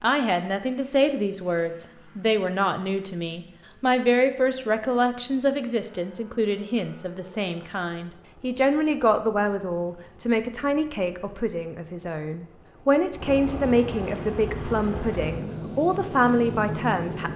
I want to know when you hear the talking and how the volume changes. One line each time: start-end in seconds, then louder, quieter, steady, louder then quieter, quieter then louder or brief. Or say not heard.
0.0-17.3 steady.